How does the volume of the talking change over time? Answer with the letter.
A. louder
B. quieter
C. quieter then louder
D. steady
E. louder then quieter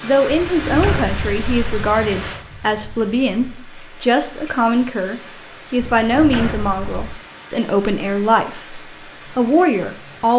D.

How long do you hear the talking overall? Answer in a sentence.
You can hear the talking for 10 seconds altogether.